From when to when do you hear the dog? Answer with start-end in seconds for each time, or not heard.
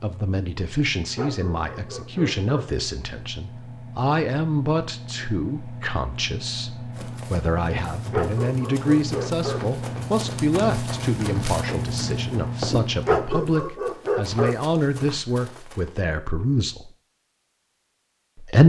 1.1-2.6, 8.1-9.6, 13.1-14.6.